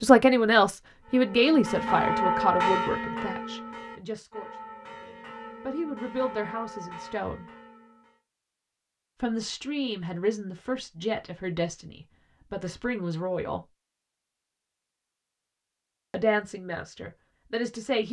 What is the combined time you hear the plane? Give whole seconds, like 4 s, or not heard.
not heard.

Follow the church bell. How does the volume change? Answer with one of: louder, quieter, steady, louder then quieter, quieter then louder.
quieter.